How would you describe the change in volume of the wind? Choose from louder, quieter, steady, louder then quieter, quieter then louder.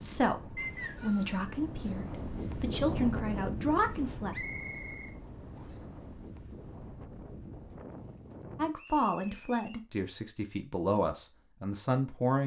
louder then quieter.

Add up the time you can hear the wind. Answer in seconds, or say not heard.
9 s.